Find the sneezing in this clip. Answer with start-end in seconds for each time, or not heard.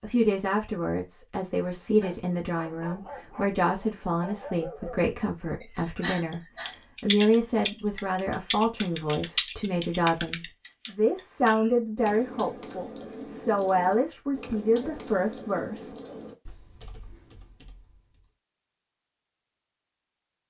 5.6-6.8.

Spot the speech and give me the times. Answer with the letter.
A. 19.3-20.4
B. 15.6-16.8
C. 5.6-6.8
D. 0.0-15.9
D.